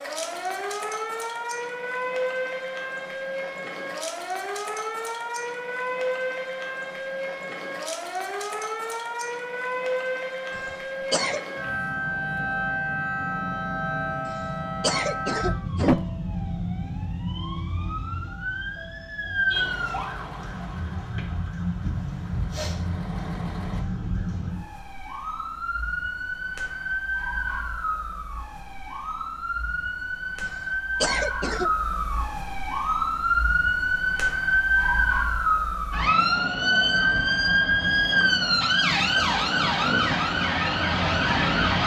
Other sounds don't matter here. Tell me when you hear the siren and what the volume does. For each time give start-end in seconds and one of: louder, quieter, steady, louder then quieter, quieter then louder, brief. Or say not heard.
0.0-41.8 louder.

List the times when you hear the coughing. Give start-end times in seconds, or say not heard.
10.5-11.4, 14.2-16.1, 30.4-31.7.